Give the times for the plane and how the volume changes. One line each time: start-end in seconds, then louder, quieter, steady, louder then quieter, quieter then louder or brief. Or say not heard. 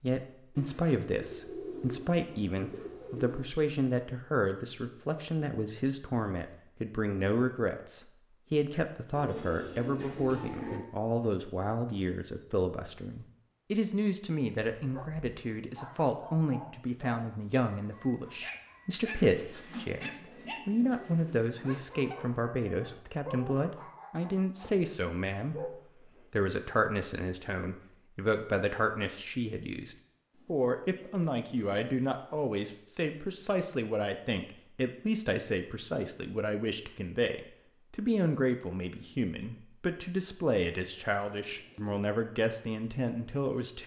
not heard.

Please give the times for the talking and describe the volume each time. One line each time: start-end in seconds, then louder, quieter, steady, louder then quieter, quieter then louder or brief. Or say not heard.
0.0-43.8 steady.